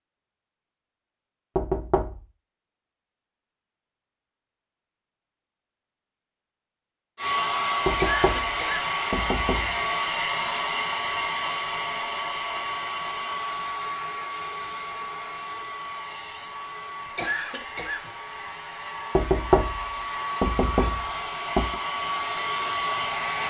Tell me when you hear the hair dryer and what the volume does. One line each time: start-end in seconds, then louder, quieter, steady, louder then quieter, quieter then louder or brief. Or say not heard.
7.2-23.4 quieter then louder.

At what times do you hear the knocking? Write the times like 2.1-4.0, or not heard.
1.6-2.2, 7.8-9.8, 19.1-21.8.